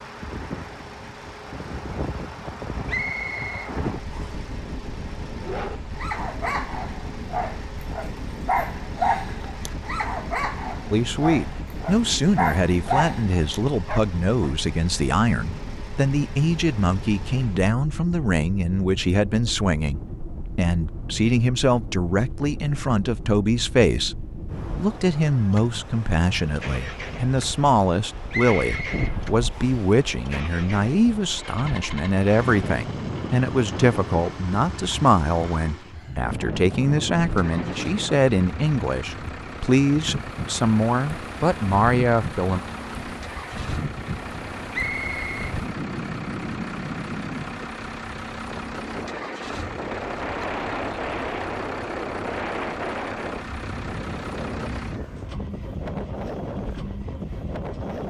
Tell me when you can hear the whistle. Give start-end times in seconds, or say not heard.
2.9-4.5, 28.3-29.9, 44.7-45.5.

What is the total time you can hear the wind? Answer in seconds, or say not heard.
58 s.